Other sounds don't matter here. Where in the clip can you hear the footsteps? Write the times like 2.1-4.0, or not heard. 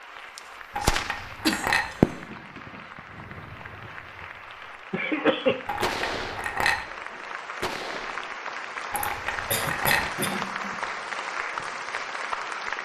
not heard.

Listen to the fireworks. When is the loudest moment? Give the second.
2 s.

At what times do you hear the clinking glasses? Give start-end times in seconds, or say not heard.
0.8-1.9, 5.7-6.8, 8.9-10.1.